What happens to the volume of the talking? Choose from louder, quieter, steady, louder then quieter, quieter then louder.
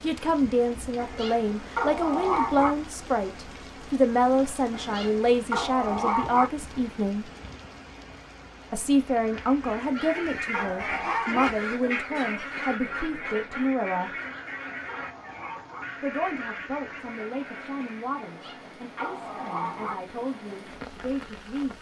quieter.